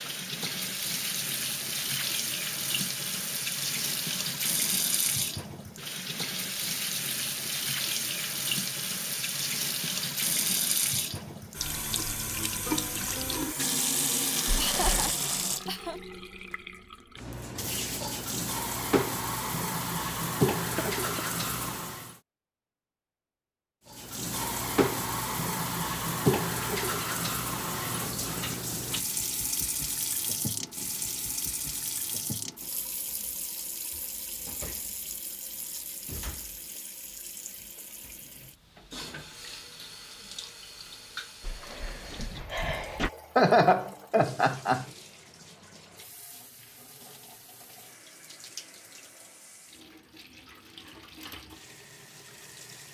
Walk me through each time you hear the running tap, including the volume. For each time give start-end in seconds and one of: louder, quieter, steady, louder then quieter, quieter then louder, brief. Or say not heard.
0.0-22.2 steady
23.9-52.8 quieter.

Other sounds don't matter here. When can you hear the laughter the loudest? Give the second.
44 s.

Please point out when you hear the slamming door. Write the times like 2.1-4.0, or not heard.
14.4-15.2, 41.4-43.1.